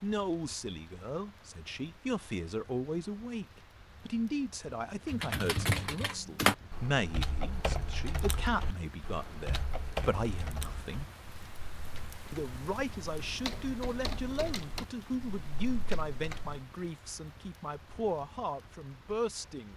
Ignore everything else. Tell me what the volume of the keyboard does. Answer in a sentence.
The volume of the keyboard goes down.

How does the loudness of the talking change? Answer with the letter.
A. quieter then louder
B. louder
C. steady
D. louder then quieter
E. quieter
C.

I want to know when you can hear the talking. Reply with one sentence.
The talking can be heard from 0.0 to 11.1 s and from 12.3 to 19.7 s.